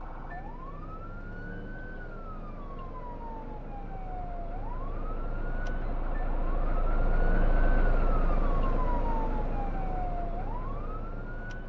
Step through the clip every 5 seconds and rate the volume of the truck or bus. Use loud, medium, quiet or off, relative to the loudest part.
quiet, loud, medium.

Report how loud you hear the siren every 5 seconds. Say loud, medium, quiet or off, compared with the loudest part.
medium, loud, loud.